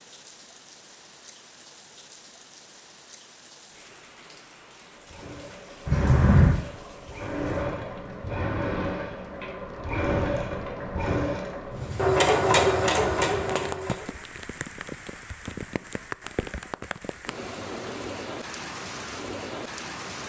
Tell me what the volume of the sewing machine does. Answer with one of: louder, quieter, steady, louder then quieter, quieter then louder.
quieter then louder.